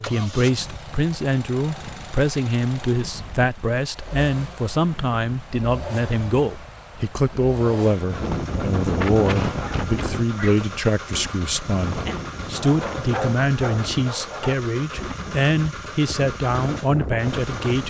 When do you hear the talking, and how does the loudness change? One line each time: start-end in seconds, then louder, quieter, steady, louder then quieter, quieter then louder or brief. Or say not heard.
0.1-17.8 steady.